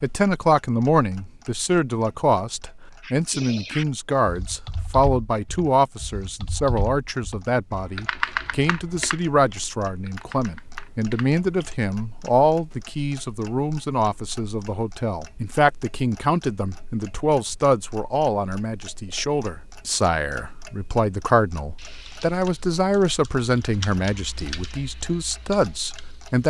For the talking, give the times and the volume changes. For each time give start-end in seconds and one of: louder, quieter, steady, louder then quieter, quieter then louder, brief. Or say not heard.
0.0-26.4 steady.